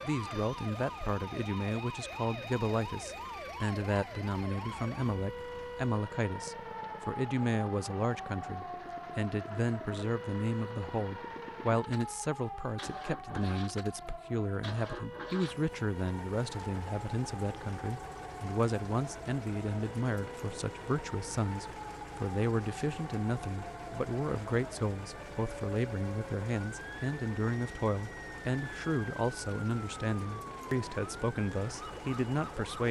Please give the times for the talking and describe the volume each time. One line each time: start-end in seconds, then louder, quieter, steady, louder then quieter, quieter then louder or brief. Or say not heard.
0.0-32.8 steady.